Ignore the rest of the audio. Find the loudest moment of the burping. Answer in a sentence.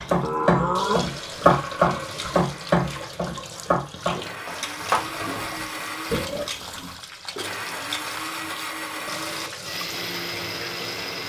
The volume of the burping peaks at 1 second.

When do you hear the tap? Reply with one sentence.
The tap can be heard from 0.0 to 11.2 s.